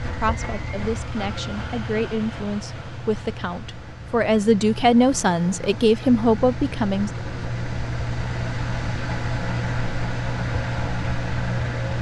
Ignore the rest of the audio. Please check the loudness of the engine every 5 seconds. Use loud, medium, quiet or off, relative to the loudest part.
medium, loud, loud.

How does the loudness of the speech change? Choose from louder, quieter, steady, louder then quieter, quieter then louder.
louder.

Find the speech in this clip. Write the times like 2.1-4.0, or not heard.
0.0-7.1.